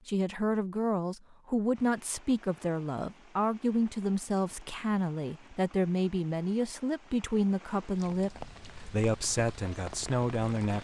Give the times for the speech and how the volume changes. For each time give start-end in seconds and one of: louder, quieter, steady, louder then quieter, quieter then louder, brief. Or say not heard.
0.1-10.7 steady.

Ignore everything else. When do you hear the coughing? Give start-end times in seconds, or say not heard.
not heard.